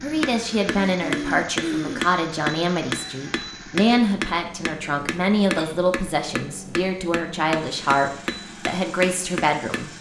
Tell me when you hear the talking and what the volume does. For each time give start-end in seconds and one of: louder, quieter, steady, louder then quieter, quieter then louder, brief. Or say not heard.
0.0-9.9 steady.